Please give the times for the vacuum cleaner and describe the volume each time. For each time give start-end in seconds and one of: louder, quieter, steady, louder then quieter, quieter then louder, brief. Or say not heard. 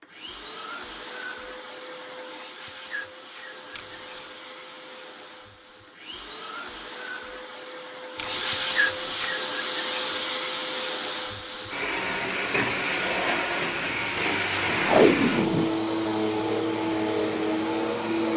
0.0-18.3 louder.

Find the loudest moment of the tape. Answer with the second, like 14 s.
15 s.